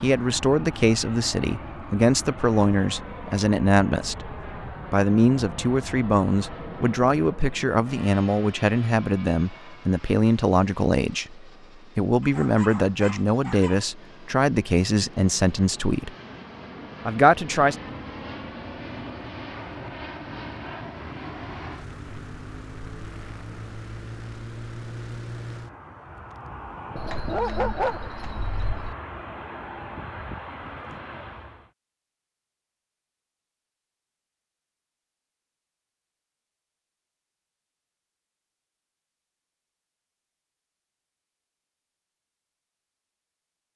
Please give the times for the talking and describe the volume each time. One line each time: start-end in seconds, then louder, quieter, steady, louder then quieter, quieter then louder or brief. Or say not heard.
0.0-16.1 steady
17.1-17.8 brief.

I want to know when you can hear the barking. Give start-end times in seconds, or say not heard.
12.2-13.8, 26.9-28.9.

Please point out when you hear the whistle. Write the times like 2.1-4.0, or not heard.
not heard.